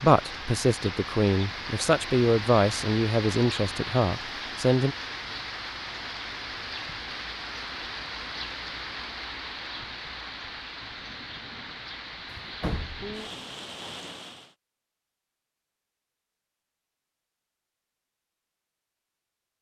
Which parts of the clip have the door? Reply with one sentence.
You can hear the door from 12.3 to 13.6 s.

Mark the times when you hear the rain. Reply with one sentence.
You can hear the rain from 0.0 to 14.6 s.